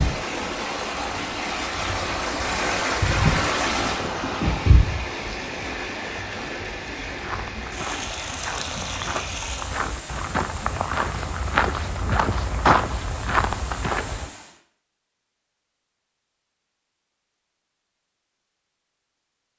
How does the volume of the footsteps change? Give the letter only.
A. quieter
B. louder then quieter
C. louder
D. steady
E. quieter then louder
C.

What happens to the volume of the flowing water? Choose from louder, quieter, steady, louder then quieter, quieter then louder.
quieter.